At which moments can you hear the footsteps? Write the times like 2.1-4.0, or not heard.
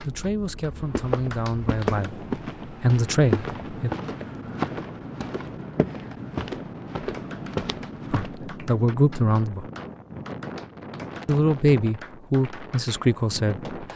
0.7-8.4.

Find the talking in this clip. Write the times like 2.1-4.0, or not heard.
0.0-3.9, 8.1-9.7, 11.2-13.9.